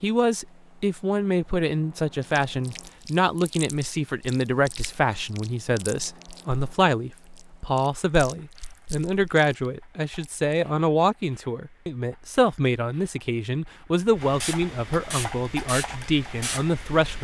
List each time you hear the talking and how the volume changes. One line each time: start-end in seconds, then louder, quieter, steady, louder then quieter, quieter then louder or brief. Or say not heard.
0.0-17.1 steady.